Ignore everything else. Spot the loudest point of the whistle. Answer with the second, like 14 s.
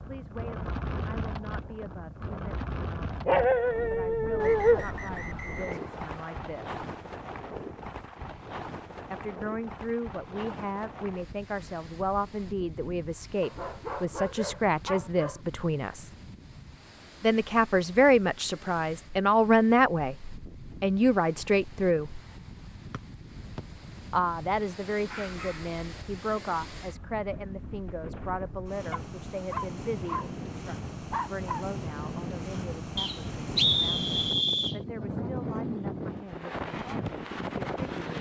34 s.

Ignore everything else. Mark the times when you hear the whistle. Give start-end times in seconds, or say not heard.
4.4-6.4, 22.9-23.6, 33.0-34.8.